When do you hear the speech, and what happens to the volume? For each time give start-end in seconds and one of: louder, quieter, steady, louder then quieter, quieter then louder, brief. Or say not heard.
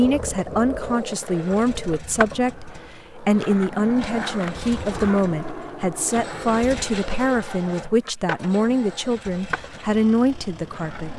0.0-11.1 steady.